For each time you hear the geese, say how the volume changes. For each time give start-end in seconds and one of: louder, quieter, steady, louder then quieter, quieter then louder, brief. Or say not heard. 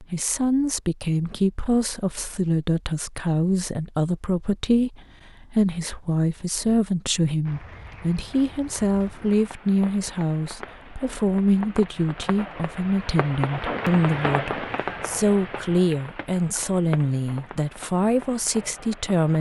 not heard.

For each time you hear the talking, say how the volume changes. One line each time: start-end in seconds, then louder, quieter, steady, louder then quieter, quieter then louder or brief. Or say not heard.
0.0-19.3 steady.